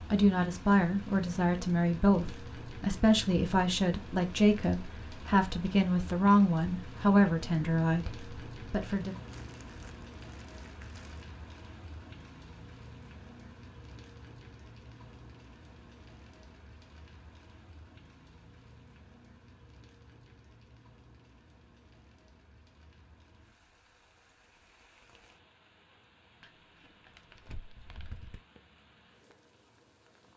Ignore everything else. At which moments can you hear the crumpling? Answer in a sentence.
The crumpling can be heard from 9.1 to 11.3 s and from 26.4 to 28.4 s.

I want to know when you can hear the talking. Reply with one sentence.
You can hear the talking from 0.1 to 8.1 s and from 8.7 to 9.2 s.